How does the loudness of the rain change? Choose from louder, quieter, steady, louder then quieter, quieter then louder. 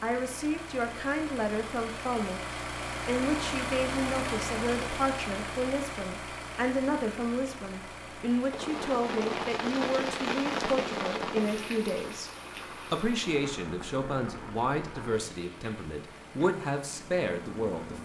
quieter.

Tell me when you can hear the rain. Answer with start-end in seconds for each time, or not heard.
8.5-18.0.